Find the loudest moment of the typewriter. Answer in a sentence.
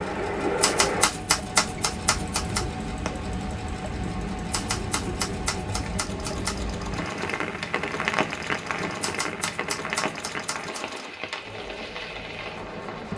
The volume of the typewriter peaks at 1 second.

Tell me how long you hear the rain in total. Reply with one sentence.
You can hear the rain for 13 seconds altogether.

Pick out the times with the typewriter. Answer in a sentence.
You can hear the typewriter from 0.6 to 2.6 s, from 4.5 to 6.6 s and from 9.0 to 11.0 s.